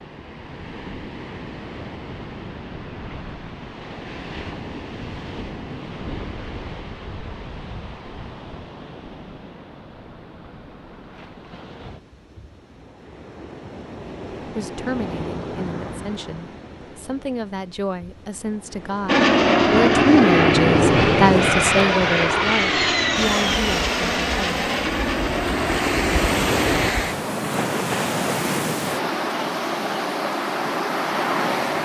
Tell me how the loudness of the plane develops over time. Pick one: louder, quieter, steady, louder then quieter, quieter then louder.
quieter.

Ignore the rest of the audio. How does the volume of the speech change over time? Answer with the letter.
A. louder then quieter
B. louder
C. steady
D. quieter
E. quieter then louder
A.